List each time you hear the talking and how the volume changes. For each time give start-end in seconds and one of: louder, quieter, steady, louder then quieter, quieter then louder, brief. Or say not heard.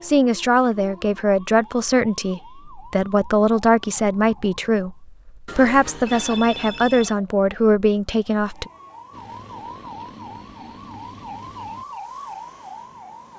0.0-8.7 steady.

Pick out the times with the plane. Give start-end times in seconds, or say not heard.
9.1-11.8.